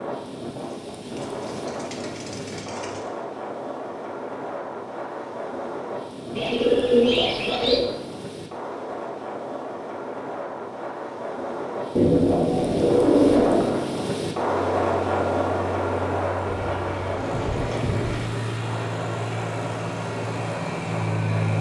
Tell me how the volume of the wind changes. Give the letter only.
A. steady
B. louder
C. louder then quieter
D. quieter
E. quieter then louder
C.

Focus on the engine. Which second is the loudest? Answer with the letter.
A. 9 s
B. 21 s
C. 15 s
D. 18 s
B.